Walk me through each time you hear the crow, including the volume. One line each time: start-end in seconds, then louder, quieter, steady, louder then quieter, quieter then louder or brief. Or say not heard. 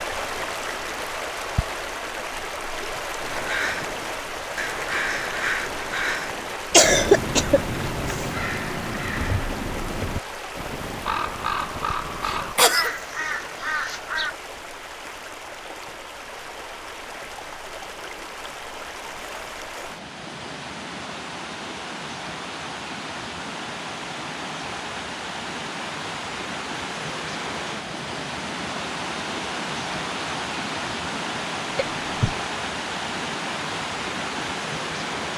3.1-14.3 steady.